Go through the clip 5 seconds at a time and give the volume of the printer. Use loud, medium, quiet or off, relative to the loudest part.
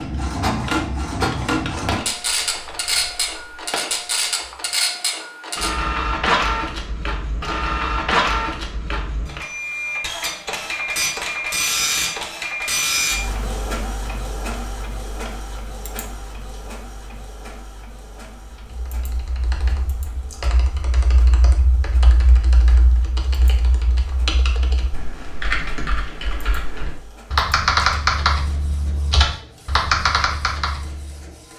loud, loud, loud, quiet, quiet, quiet, quiet.